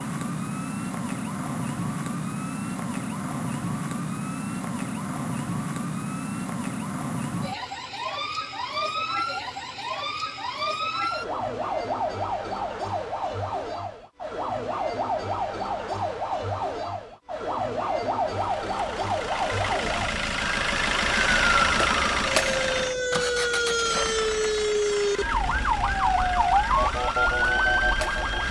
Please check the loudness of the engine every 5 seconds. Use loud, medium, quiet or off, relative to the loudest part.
off, off, off, medium, loud, medium.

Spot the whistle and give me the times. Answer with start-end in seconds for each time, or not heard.
not heard.